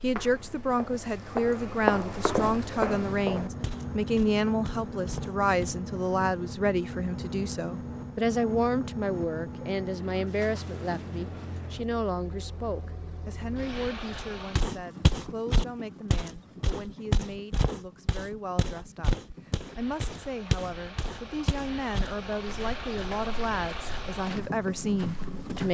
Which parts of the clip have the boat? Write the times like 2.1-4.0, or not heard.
2.8-25.6.